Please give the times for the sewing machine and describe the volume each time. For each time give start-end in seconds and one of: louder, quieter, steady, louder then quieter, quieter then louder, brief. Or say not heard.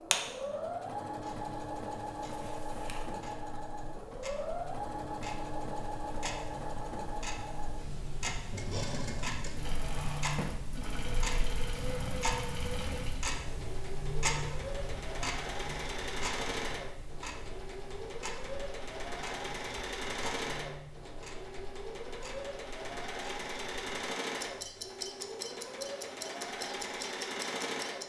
0.0-28.0 steady.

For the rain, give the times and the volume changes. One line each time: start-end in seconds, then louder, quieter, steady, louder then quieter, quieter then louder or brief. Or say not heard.
not heard.